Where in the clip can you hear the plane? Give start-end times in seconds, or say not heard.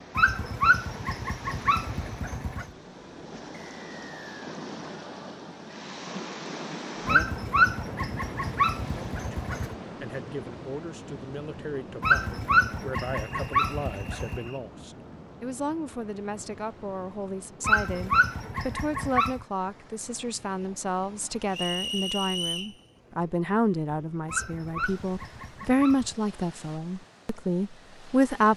not heard.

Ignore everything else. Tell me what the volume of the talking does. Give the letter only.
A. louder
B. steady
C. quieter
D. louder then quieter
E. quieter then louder
A.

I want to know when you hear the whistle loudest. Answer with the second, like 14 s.
22 s.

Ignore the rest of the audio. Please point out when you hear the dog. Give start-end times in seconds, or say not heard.
0.1-2.7, 7.0-9.8, 12.0-14.5, 17.6-19.4, 24.2-26.1.